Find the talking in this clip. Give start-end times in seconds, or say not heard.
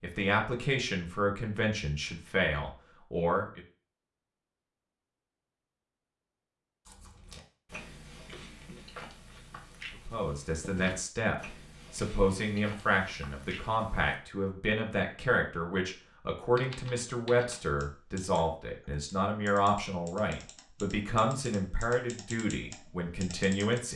0.0-3.6, 9.9-23.9.